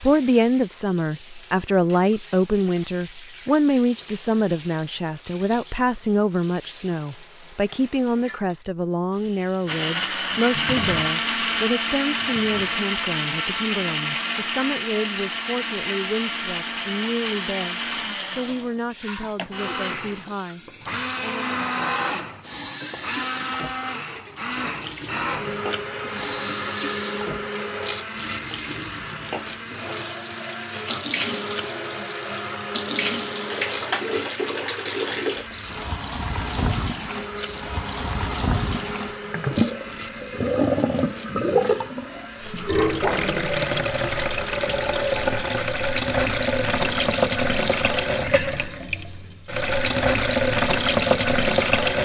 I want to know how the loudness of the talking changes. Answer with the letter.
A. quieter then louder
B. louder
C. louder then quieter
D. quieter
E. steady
D.